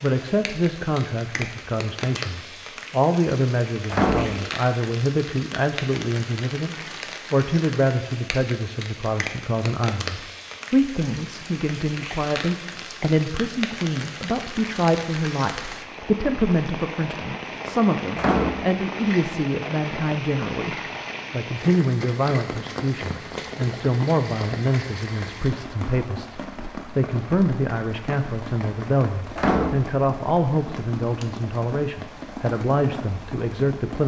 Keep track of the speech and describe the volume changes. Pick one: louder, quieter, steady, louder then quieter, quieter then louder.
steady.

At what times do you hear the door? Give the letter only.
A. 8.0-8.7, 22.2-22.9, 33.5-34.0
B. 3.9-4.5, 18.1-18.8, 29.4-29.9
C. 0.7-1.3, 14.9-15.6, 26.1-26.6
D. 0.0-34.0
B.